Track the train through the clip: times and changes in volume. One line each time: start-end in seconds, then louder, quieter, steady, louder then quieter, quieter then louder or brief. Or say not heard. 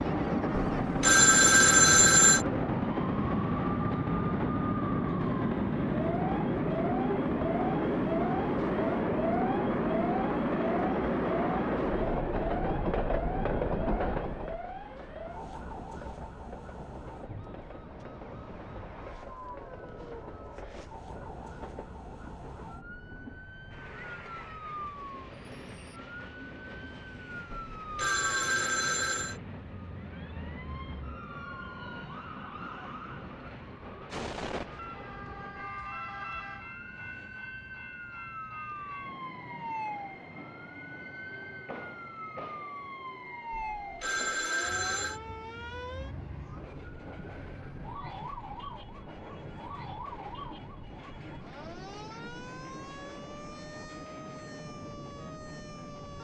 0.0-56.1 quieter.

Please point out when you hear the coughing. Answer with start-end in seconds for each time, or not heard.
not heard.